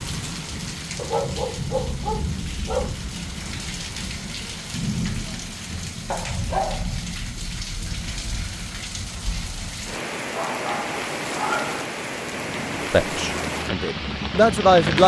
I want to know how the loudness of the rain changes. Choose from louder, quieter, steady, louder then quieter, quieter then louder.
steady.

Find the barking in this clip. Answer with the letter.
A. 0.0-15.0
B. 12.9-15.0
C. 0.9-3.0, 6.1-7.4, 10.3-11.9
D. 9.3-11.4
C.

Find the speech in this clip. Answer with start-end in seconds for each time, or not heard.
12.9-15.0.